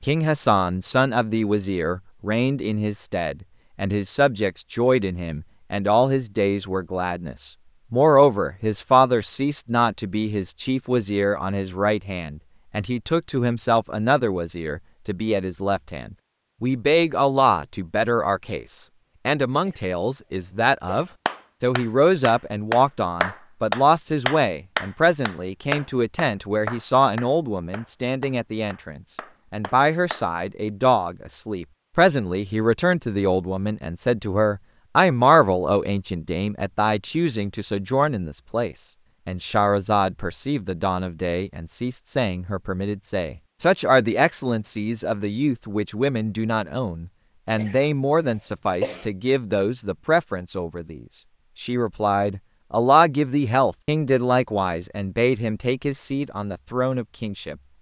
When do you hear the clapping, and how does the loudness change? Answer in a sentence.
The clapping can be heard from 21.2 to 30.2 s, getting quieter.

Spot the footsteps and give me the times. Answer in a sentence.
The footsteps can't be heard in this clip.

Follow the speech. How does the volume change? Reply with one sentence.
The volume of the speech stays about the same.